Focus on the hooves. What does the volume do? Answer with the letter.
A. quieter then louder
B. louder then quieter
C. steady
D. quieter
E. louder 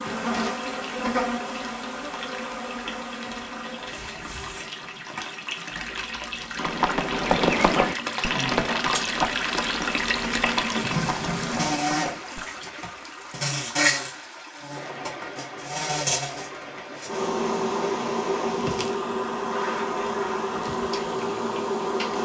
D.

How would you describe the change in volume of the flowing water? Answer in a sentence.
The loudness of the flowing water goes up, then down.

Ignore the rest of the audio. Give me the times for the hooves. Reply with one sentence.
The hooves can be heard from 6.5 to 12.4 s.